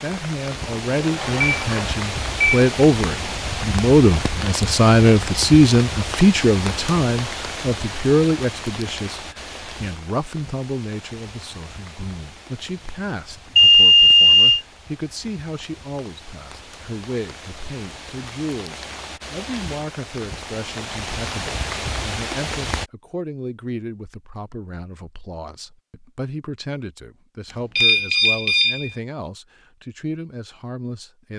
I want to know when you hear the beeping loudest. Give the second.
14 s.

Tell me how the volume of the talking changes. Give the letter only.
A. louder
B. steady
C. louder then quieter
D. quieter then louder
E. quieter
E.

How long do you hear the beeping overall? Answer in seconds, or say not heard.
4 s.